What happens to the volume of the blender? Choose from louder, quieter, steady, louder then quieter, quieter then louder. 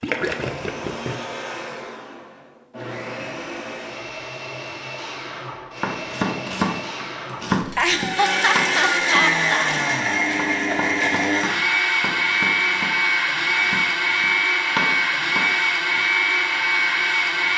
louder.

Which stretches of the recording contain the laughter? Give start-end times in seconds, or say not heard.
7.6-9.7.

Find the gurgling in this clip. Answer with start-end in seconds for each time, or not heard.
0.0-1.6.